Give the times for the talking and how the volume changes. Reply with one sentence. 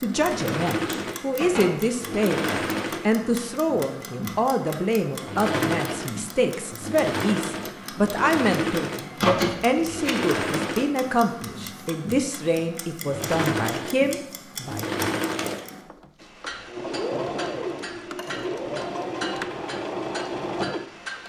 You can hear the talking from 0.0 to 14.9 s, at a steady volume.